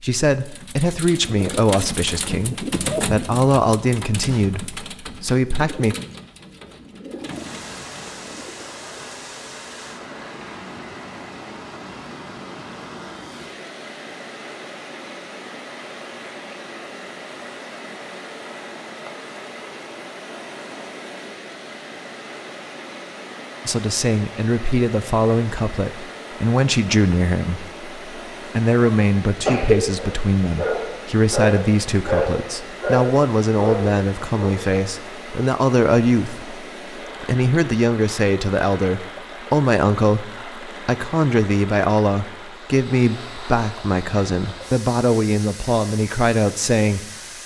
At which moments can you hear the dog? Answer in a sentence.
You can hear the dog from 29.0 to 34.6 s.